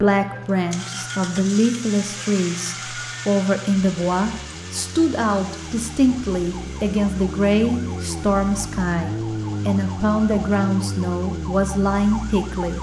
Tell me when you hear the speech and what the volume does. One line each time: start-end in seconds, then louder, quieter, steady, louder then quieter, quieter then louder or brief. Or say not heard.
0.0-12.7 steady.